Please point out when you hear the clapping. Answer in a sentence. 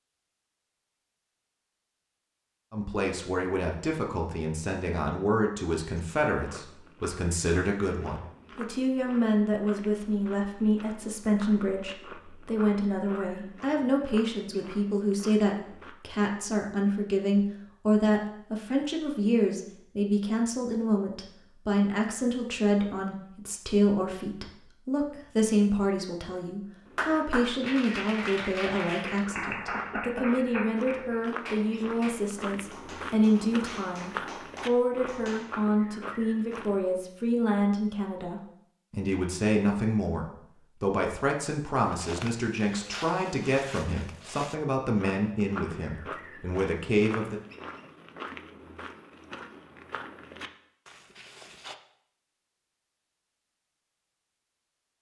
The clapping can be heard from 26.9 to 35.5 s.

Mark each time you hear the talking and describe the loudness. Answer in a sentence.
You can hear the talking from 2.7 to 47.4 s, at a steady volume.